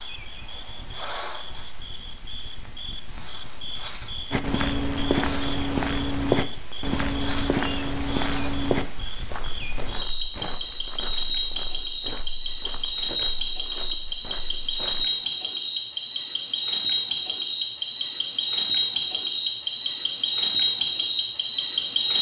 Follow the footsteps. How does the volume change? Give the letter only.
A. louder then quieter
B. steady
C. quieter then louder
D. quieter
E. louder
D.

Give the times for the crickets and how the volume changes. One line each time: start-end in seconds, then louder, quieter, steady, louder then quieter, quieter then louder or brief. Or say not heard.
0.0-22.1 louder.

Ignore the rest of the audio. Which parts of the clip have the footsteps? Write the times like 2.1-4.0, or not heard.
4.3-15.1.